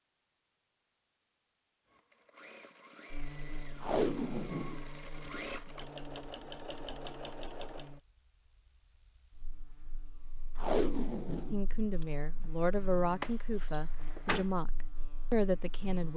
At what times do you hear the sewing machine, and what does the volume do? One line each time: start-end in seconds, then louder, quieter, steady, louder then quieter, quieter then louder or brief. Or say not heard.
1.9-8.0 louder.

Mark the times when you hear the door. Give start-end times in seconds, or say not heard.
13.2-14.5.